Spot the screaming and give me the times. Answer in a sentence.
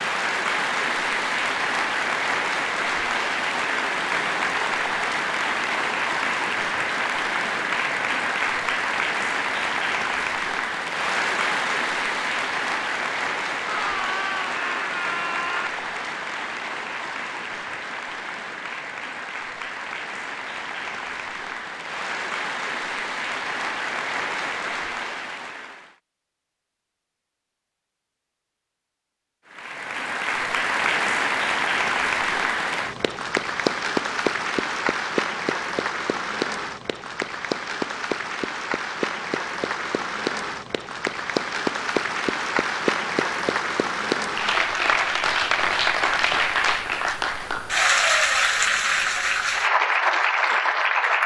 The screaming can be heard from 13.7 to 15.7 s.